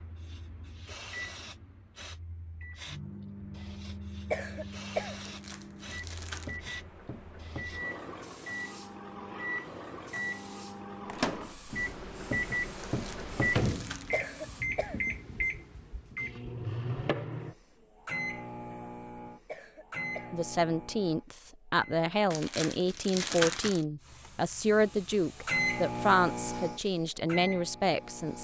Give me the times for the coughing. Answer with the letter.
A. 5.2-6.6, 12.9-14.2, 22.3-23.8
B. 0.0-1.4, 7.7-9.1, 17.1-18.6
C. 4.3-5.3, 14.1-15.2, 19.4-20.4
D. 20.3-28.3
C.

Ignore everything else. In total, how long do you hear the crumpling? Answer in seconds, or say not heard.
4 s.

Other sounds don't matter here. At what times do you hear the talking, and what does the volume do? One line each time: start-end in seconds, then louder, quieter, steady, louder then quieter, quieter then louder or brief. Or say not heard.
20.3-28.3 steady.